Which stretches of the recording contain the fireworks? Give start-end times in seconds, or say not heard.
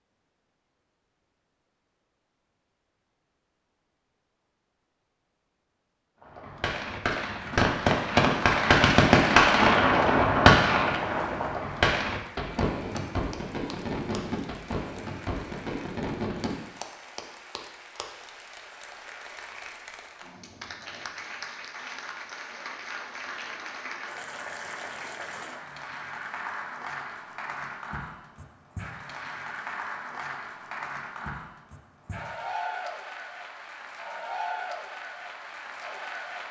6.2-16.5.